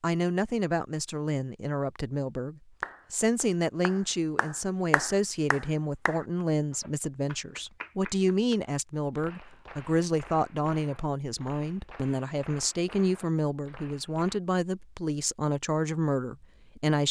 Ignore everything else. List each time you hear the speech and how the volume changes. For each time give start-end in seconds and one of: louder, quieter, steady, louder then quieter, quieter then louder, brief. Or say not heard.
0.0-17.0 steady.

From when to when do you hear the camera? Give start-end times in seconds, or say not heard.
not heard.